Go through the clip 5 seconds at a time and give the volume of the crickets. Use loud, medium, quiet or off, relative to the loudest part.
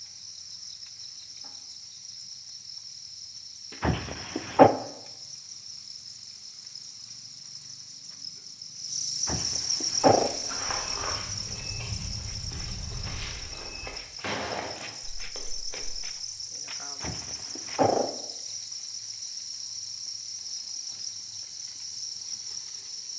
medium, loud, loud, loud, loud.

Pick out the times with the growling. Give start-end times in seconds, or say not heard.
3.8-4.8, 9.2-10.3, 17.0-18.1.